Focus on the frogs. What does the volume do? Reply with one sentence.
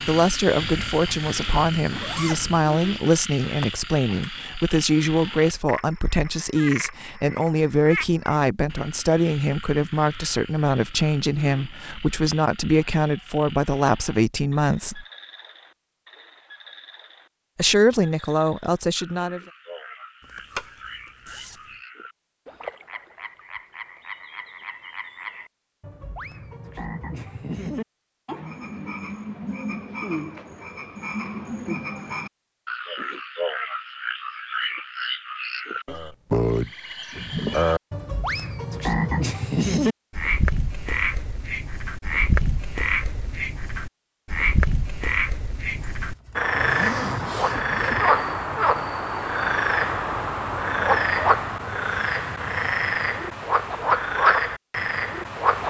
The loudness of the frogs goes down, then up.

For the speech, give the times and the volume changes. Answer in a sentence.
The speech can be heard from 0.1 to 15.1 s, at a steady volume; and briefly from 17.6 to 19.4 s.